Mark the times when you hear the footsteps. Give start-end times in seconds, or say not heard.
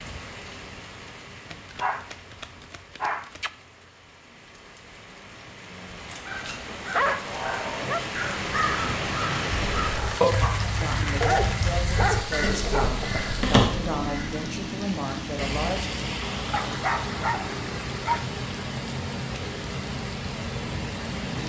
not heard.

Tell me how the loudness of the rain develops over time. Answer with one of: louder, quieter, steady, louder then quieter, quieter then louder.
louder.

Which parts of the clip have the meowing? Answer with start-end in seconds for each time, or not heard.
not heard.